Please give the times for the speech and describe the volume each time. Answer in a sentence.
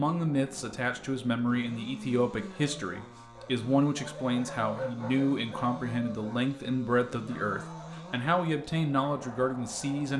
The speech can be heard from 0.0 to 10.1 s, at a steady volume.